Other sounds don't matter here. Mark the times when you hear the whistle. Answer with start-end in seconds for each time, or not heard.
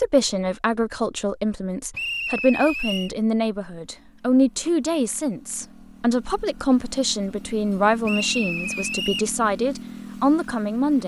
1.9-3.1, 8.1-9.3.